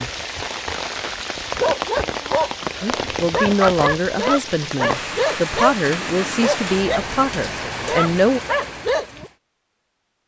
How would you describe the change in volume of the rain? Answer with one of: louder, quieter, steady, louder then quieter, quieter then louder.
steady.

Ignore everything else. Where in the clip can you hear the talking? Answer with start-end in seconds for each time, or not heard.
2.8-8.4.